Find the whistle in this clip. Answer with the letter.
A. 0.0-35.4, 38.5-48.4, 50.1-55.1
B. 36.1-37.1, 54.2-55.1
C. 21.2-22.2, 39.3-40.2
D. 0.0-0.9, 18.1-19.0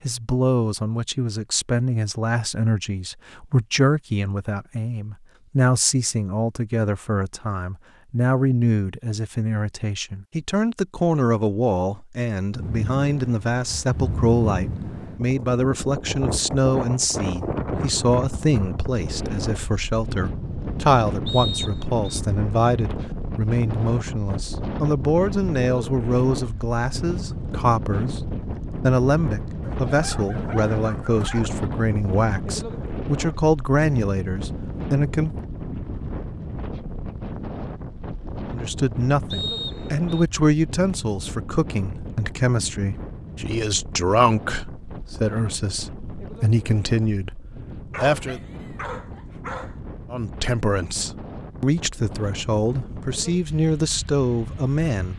C.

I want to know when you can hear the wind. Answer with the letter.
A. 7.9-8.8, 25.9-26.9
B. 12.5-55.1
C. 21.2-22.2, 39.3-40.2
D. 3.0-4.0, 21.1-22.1
B.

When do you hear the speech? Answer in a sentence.
You can hear the speech from 0.0 to 35.4 s, from 38.5 to 48.4 s and from 50.1 to 55.1 s.